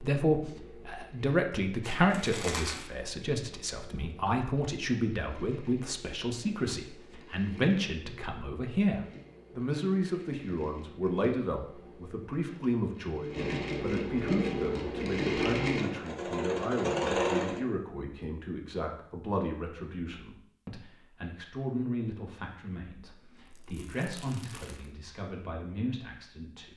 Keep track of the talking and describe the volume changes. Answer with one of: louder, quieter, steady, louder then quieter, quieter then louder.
quieter.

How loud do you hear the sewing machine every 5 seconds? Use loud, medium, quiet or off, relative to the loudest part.
quiet, quiet, medium, loud, off, off.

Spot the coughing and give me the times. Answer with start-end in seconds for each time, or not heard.
not heard.